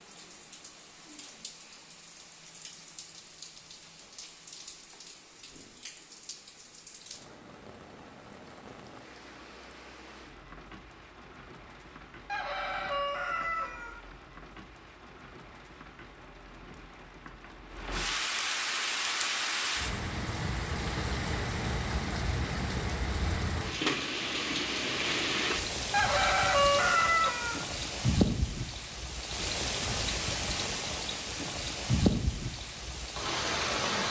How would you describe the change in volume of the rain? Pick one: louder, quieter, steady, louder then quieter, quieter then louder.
louder.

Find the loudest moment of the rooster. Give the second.
27 s.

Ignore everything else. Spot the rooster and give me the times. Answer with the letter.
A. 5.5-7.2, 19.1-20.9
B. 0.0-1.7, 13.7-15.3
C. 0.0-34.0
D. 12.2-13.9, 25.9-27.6
D.